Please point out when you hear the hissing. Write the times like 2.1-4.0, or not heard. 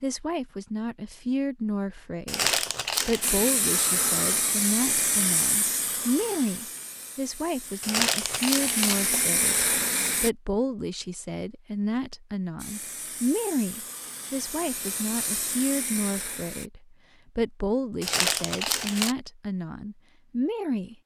3.2-10.3, 12.6-16.7.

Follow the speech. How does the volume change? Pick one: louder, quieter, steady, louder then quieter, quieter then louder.
steady.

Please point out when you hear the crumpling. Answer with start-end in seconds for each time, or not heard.
2.2-3.4, 7.8-9.2, 18.0-19.1.